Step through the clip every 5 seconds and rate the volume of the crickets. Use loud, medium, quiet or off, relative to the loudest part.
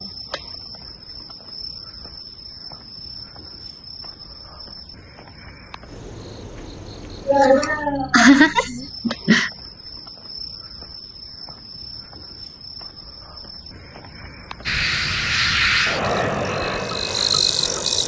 quiet, quiet, quiet, loud.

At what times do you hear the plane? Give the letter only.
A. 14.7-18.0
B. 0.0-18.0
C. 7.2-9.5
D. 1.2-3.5
A.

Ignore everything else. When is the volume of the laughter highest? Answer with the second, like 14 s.
8 s.